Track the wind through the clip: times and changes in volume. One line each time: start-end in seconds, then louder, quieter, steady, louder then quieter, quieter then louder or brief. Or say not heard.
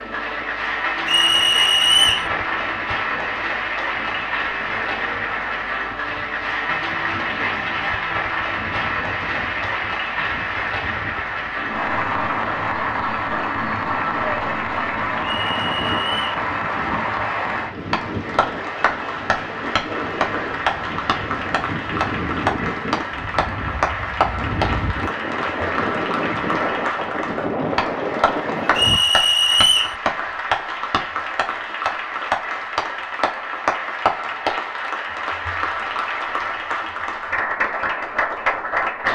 0.0-29.0 louder.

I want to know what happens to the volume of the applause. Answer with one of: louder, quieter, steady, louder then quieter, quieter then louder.
steady.